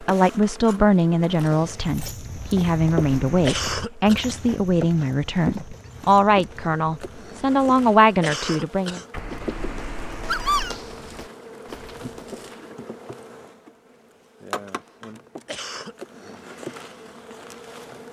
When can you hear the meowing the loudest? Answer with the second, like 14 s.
10 s.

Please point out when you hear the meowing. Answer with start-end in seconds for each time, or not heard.
2.6-3.5, 9.1-10.8.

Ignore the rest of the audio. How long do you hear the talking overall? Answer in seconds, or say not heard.
9 s.